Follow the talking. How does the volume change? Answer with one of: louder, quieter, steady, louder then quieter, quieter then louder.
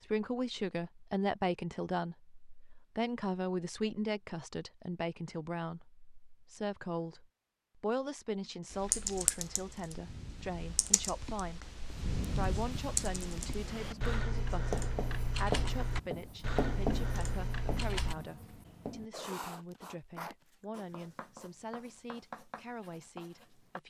quieter.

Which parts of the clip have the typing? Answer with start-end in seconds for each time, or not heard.
8.7-18.1.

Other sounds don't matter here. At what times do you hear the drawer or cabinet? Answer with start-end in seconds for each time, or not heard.
not heard.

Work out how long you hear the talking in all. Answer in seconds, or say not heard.
24 s.